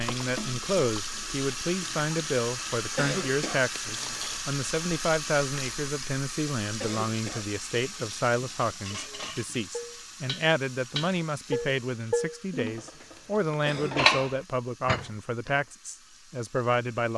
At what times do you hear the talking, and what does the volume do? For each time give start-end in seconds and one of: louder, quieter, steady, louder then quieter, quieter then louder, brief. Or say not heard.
0.0-17.1 steady.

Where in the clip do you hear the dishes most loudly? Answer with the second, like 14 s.
14 s.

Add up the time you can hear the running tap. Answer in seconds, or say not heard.
17 s.